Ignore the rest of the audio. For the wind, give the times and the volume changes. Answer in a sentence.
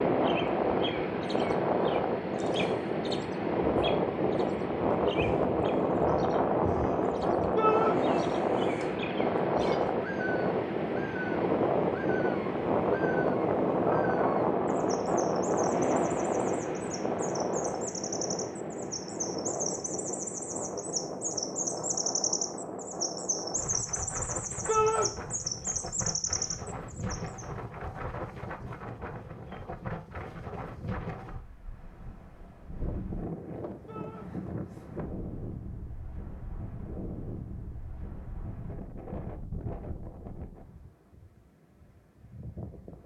The wind can be heard from 0.0 to 43.0 s, getting quieter.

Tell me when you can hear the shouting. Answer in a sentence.
The shouting can be heard from 7.5 to 8.0 s, from 24.6 to 25.1 s and from 33.9 to 34.3 s.